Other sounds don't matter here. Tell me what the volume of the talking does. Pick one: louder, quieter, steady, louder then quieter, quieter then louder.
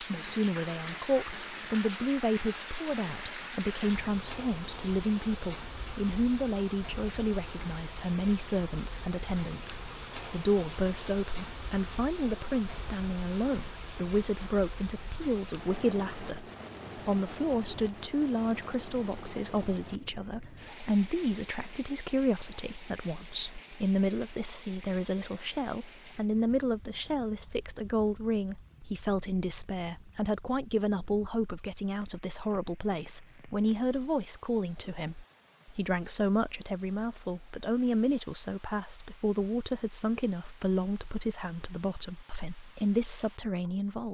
steady.